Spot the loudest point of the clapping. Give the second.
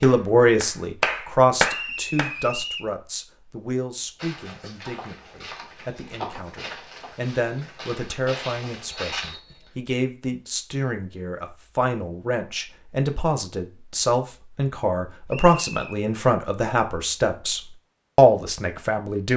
2 s.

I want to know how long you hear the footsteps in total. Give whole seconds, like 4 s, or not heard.
5 s.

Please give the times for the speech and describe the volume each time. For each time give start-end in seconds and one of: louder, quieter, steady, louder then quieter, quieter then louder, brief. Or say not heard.
0.0-19.3 quieter then louder.